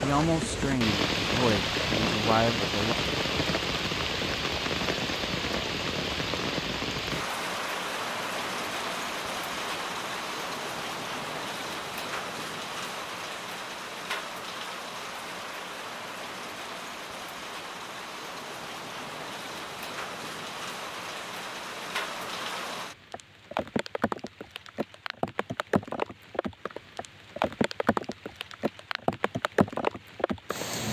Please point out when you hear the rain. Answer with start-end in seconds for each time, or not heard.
0.0-30.8.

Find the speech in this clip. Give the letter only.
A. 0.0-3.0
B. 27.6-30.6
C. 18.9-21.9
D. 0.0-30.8
A.